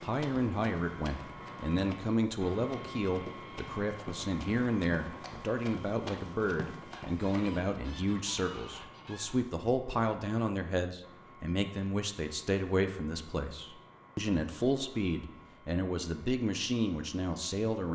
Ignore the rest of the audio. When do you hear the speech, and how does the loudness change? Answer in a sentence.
The speech can be heard from 0.0 to 17.9 s, at a steady volume.